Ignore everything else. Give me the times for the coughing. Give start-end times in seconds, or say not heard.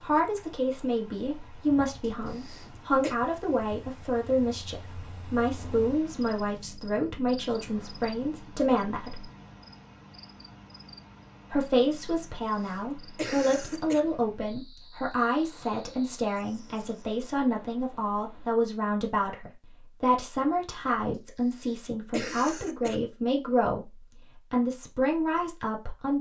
2.0-3.1, 12.6-14.0, 21.6-22.9.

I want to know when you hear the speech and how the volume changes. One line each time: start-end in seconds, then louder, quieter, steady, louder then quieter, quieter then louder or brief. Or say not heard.
0.0-9.3 steady
11.5-26.1 steady.